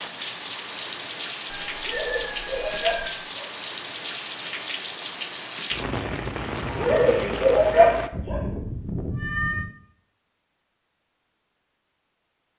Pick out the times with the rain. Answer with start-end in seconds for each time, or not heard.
0.0-8.1.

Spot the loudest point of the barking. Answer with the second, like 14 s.
8 s.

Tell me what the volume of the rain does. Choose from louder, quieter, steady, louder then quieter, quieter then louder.
steady.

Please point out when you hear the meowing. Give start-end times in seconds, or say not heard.
1.4-3.1, 8.1-9.7.